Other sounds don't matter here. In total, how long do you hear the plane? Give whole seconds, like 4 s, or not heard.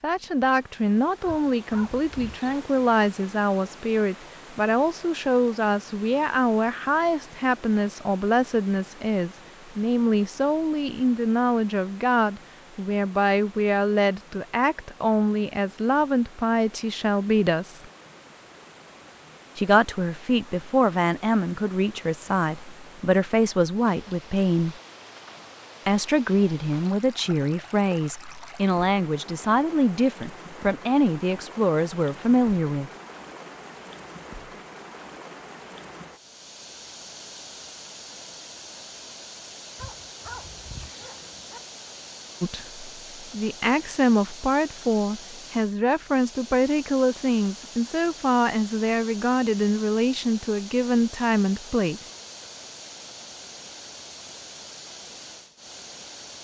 not heard.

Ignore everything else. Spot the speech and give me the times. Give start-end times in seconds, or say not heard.
0.0-17.9, 19.6-24.8, 25.9-32.9, 42.4-52.1.